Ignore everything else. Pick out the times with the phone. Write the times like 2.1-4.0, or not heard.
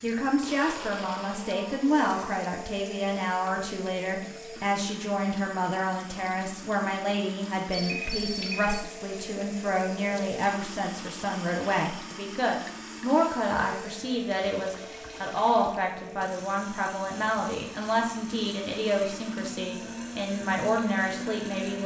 7.7-8.8.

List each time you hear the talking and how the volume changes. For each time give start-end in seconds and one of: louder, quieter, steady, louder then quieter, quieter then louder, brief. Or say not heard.
0.0-21.8 steady.